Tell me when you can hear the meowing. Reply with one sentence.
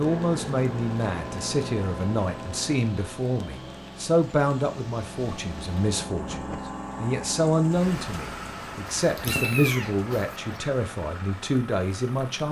You can hear the meowing from 9.1 to 10.6 s.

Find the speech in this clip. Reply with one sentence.
You can hear the speech from 0.0 to 12.4 s.